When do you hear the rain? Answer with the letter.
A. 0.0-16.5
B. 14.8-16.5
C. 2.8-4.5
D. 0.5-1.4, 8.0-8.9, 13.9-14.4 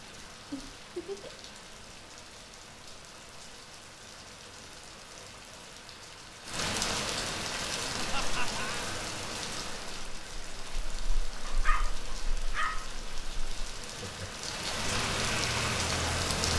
A.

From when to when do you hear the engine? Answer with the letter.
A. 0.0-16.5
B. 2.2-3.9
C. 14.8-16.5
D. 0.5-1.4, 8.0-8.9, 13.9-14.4
C.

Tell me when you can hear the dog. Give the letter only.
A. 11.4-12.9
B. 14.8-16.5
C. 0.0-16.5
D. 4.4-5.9
A.